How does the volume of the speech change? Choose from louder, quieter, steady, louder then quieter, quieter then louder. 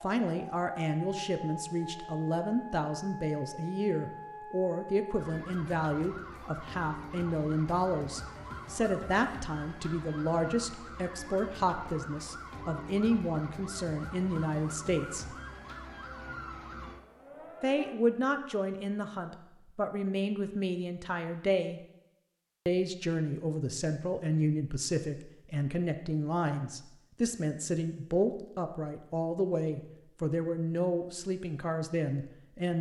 steady.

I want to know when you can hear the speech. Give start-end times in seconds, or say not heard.
0.0-15.3, 17.6-21.8, 22.6-32.7.